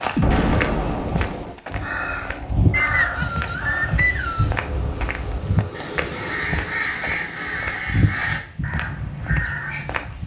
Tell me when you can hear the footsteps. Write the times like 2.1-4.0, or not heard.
0.0-10.2.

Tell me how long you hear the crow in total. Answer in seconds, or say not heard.
8 s.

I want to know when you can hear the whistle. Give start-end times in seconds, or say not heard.
2.7-4.5.